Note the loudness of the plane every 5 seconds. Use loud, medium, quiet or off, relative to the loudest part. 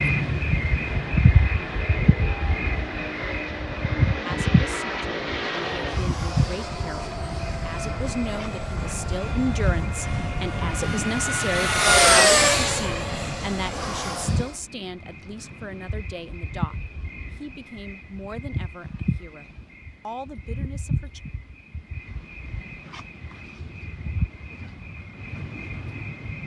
medium, medium, loud, off, off, off.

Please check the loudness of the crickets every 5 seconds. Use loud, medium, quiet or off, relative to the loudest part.
loud, medium, medium, medium, medium, medium.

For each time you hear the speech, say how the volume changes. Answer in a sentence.
The speech can be heard from 4.2 to 21.2 s, getting louder then quieter.